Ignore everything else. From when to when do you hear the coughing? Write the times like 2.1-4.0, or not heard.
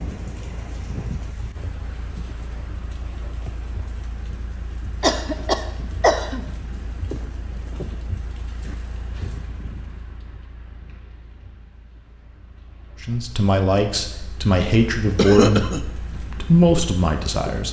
5.0-6.4, 15.2-15.8.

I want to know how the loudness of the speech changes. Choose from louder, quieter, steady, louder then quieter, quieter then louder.
quieter then louder.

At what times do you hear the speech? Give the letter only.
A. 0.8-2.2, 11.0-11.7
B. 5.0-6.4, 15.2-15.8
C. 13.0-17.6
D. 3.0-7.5
C.